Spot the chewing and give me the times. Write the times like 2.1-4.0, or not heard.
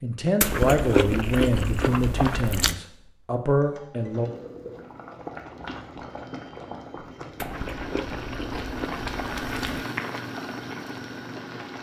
0.4-2.8, 7.3-9.8.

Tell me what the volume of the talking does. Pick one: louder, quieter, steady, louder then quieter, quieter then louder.
quieter then louder.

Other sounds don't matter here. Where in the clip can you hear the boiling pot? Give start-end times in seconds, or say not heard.
4.0-11.7.